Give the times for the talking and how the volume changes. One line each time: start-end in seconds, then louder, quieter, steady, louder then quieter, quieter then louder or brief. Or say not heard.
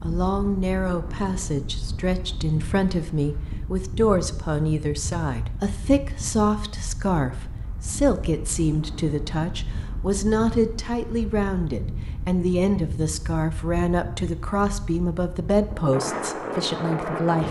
0.0-17.4 steady.